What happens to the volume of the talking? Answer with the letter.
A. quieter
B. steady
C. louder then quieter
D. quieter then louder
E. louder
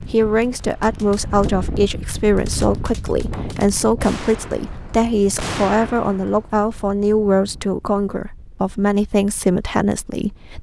B.